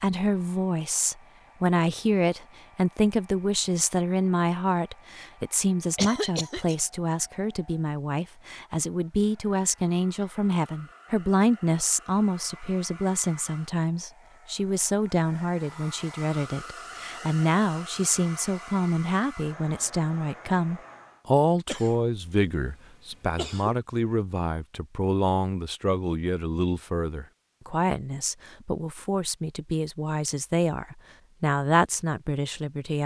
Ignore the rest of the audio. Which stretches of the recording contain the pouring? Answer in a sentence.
The pouring can't be heard in this clip.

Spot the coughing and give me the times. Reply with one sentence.
You can hear the coughing from 6.0 to 6.8 s and from 21.6 to 23.8 s.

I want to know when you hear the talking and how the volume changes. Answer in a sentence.
The talking can be heard from 0.0 to 33.0 s, at a steady volume.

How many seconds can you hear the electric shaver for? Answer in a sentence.
The electric shaver can't be heard in this clip.